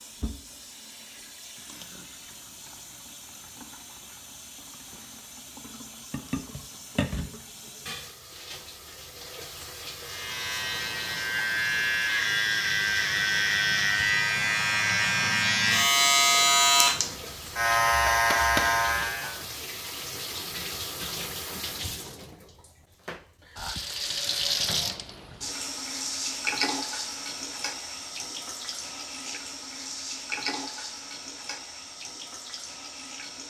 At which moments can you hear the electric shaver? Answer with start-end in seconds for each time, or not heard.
10.0-19.4.